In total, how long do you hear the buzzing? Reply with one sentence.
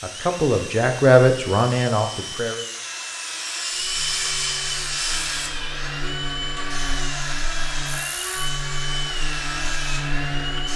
You can hear the buzzing for 7 seconds altogether.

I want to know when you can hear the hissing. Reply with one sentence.
The hissing can be heard from 0.0 to 10.7 s.